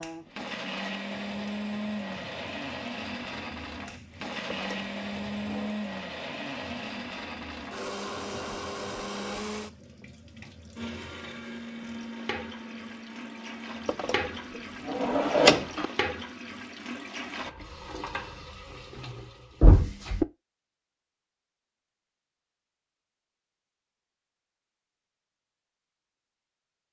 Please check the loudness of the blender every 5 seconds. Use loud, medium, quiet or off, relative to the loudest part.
loud, loud, medium, off, off, off.